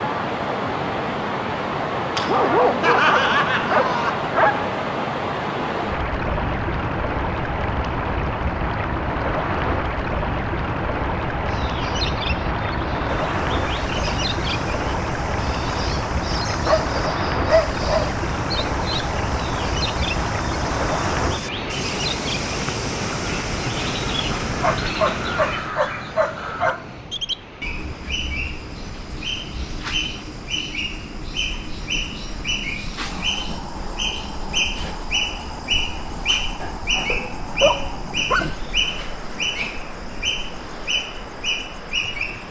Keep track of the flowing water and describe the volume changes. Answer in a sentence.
The volume of the flowing water goes down.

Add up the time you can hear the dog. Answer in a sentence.
The dog can be heard for 8 seconds in total.